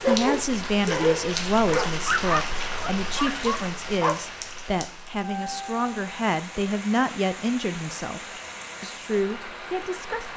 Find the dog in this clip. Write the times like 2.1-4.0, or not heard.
0.0-4.2.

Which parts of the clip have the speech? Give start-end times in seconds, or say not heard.
0.1-10.3.